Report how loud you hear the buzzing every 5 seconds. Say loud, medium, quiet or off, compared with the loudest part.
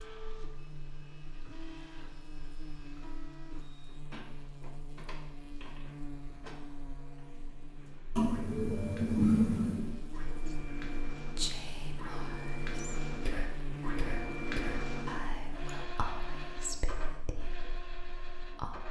medium, medium, loud, medium.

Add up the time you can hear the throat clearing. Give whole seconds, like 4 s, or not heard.
2 s.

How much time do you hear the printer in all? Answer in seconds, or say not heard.
19 s.